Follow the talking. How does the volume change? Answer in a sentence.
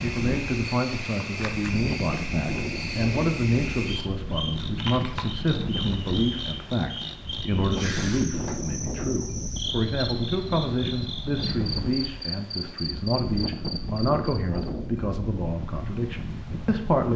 The volume of the talking stays about the same.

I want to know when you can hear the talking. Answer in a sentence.
The talking can be heard from 0.0 to 17.1 s.